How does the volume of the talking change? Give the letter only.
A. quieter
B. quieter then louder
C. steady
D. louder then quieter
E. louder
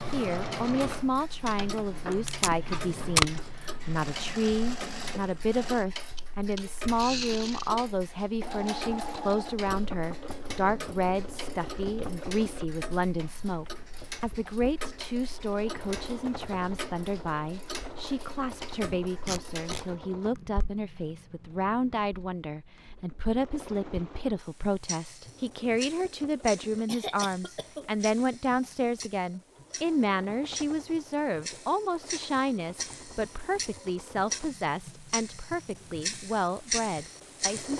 C.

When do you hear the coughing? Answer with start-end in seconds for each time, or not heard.
26.9-27.9.